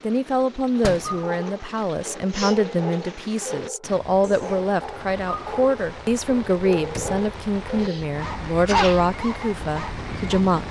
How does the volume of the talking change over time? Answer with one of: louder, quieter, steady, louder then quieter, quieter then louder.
steady.